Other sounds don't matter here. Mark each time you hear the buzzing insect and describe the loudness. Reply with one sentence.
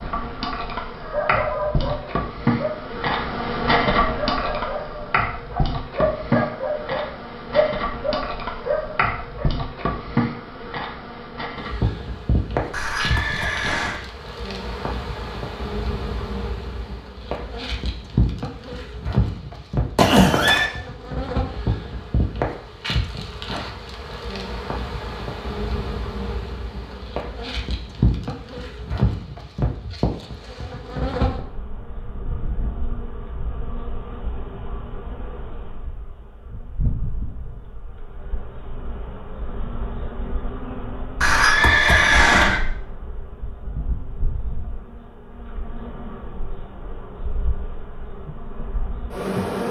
The buzzing insect can be heard from 0.0 to 49.6 s, getting quieter.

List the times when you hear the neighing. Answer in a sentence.
The neighing can be heard from 12.7 to 14.0 s, from 19.9 to 20.7 s and from 41.2 to 42.6 s.